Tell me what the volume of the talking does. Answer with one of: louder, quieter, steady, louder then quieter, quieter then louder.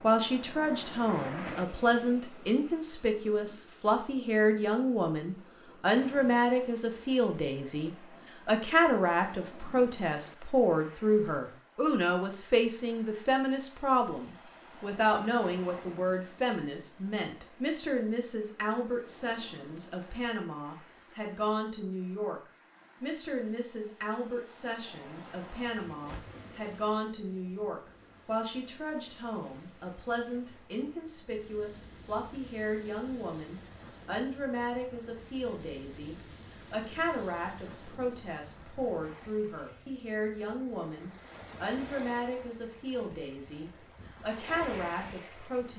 quieter.